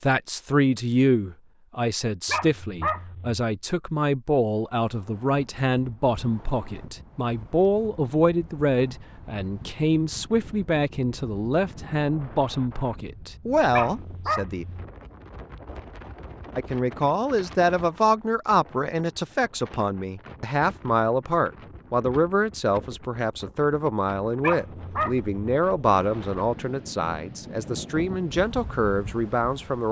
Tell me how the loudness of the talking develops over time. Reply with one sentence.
The loudness of the talking stays about the same.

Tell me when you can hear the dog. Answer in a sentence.
You can hear the dog from 2.2 to 3.5 s, from 13.7 to 14.8 s and from 24.4 to 25.3 s.